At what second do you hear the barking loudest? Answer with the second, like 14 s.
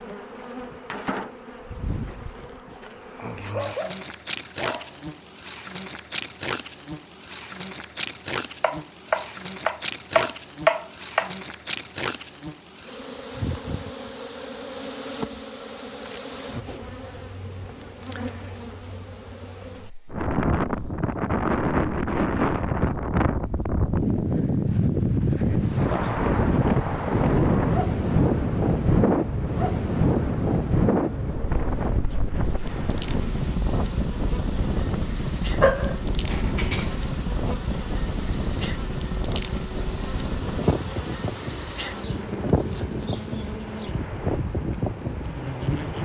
36 s.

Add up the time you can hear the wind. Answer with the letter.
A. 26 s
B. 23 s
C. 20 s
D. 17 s
A.